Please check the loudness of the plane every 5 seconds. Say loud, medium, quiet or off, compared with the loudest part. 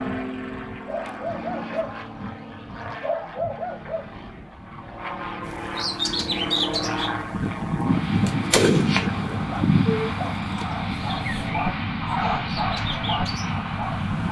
medium, loud, loud.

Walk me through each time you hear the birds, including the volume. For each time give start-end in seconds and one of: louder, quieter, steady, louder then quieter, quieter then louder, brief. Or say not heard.
5.5-14.2 quieter.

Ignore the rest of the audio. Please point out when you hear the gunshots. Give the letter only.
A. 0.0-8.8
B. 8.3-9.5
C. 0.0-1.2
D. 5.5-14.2
B.